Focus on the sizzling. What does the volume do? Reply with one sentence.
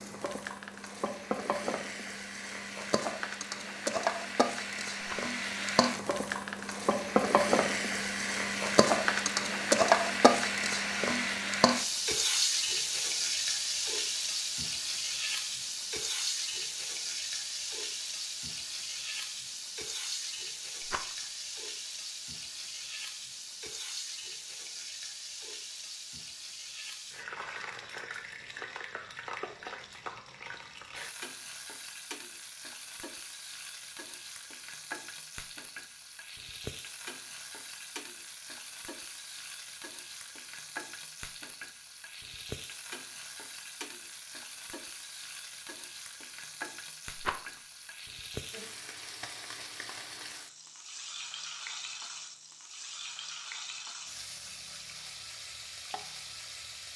The loudness of the sizzling goes down.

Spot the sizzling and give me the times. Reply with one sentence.
You can hear the sizzling from 0.0 to 56.9 s.